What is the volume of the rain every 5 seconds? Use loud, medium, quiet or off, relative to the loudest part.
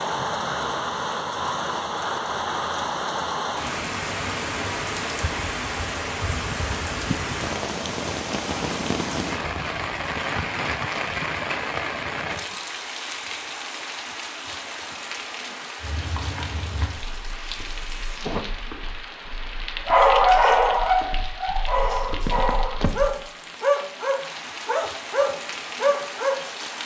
loud, loud, loud, medium, medium, medium.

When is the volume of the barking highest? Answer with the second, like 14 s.
20 s.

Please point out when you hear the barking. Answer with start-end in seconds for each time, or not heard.
19.9-26.4.